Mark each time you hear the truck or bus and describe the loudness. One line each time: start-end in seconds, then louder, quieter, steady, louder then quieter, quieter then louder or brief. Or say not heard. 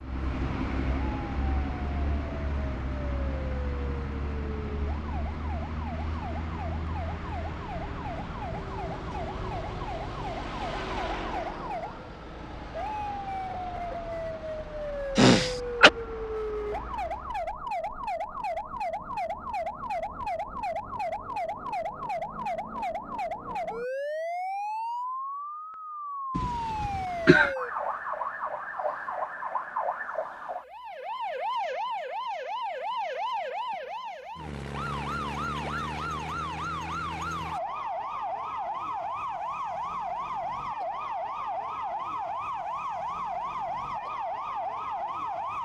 0.0-17.6 quieter.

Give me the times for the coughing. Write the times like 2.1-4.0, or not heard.
15.2-15.9, 26.4-27.6.